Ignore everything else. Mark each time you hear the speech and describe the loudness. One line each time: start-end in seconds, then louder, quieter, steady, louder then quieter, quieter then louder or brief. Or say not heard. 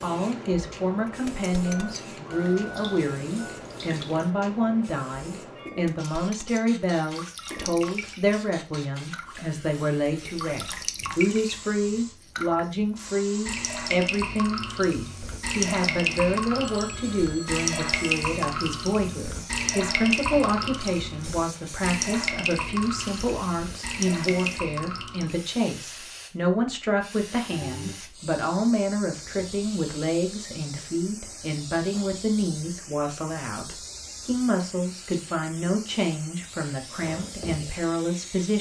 0.0-38.5 steady.